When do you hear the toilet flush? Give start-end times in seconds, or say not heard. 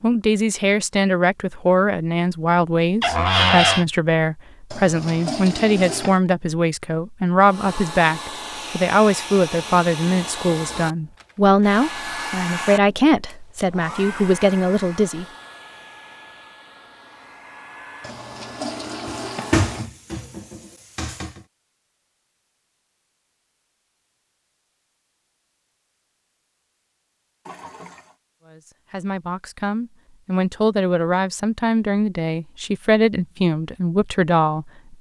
4.7-6.2, 18.0-19.9, 27.4-28.1.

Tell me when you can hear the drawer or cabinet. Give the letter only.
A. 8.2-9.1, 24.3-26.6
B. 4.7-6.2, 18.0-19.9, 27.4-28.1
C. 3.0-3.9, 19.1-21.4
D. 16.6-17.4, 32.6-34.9
C.